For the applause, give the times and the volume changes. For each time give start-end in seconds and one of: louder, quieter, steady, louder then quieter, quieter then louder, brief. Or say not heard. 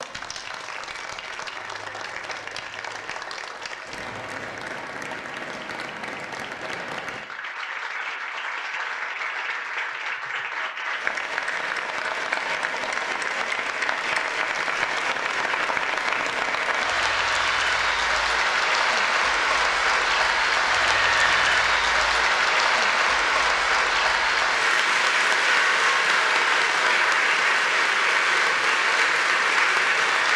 0.0-30.3 louder.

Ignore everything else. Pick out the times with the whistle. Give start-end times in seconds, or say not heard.
20.9-21.6.